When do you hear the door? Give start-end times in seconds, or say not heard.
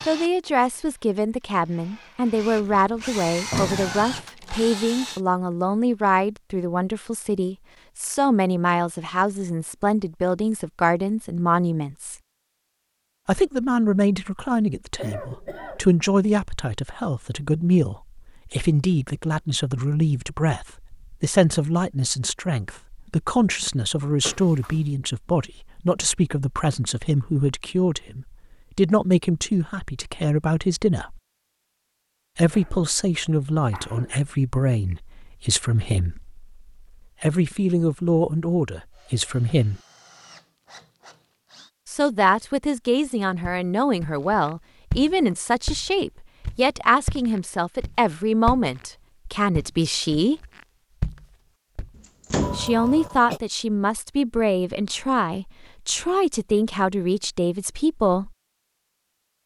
2.4-4.2, 24.2-24.9, 52.0-52.8.